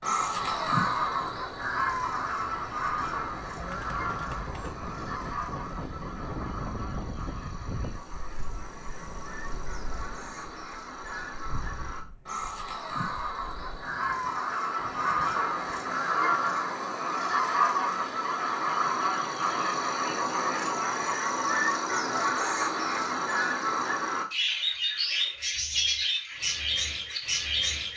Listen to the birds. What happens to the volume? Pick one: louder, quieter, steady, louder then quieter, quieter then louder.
quieter then louder.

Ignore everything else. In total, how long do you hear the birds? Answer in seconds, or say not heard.
28 s.